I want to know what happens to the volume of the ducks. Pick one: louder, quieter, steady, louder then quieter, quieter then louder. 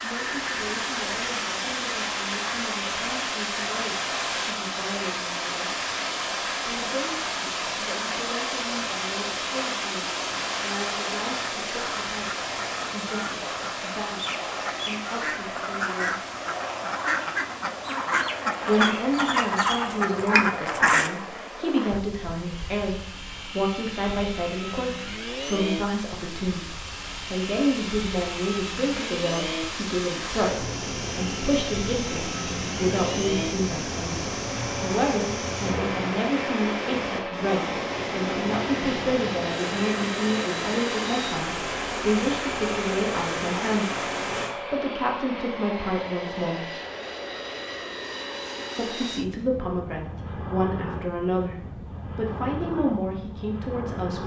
louder.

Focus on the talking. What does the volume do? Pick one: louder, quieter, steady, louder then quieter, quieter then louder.
louder.